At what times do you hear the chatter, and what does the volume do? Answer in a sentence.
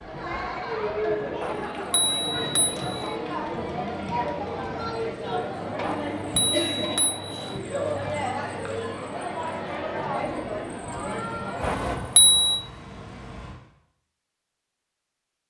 The chatter can be heard from 0.0 to 11.9 s, at a steady volume.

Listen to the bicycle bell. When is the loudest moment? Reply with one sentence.
The loudest moment of the bicycle bell is at 12 seconds.